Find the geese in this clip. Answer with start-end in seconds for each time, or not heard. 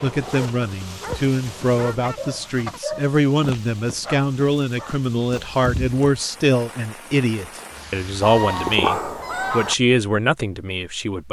1.1-2.8, 8.2-9.8.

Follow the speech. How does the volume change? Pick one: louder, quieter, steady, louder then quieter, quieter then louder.
steady.